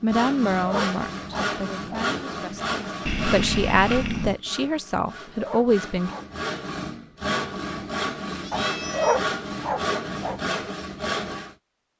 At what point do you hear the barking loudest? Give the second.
9 s.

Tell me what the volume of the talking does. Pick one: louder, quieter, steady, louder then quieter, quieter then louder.
quieter then louder.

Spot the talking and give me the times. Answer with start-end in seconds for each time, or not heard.
0.0-6.1.